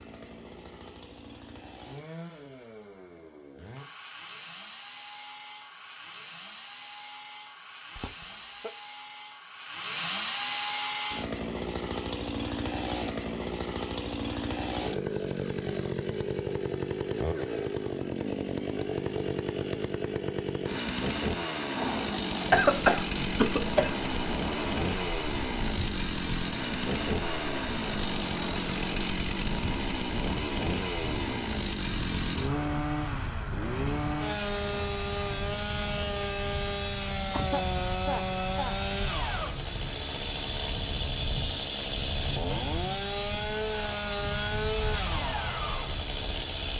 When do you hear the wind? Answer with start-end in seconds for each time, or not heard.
21.7-46.7.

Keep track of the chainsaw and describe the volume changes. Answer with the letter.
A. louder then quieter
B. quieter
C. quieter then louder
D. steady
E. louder
E.